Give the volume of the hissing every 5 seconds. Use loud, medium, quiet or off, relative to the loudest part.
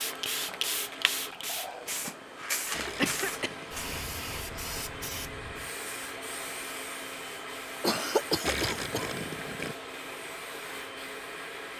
loud, medium, medium.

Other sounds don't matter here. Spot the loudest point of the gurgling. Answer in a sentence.
The volume of the gurgling peaks at 9 seconds.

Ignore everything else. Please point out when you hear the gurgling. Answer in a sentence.
You can hear the gurgling from 2.7 to 3.9 s and from 8.4 to 9.8 s.